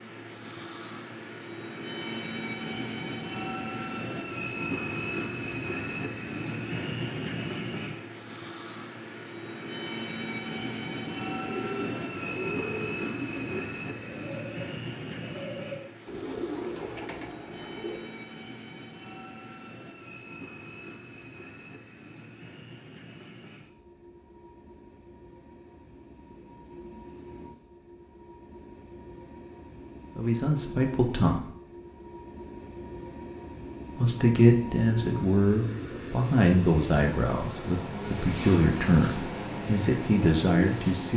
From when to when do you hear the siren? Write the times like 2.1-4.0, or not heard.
not heard.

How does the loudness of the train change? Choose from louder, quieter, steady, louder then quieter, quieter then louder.
quieter then louder.